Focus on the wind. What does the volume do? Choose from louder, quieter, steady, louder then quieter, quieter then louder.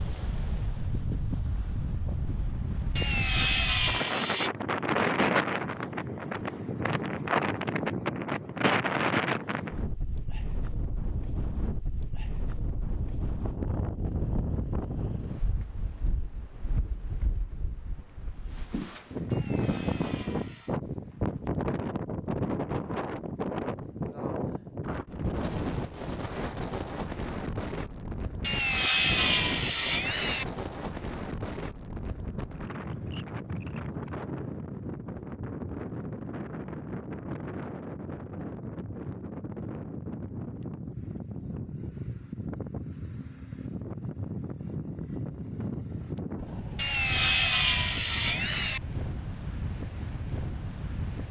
quieter.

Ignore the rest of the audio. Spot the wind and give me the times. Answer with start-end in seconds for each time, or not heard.
0.0-51.2.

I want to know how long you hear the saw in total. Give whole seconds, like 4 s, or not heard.
7 s.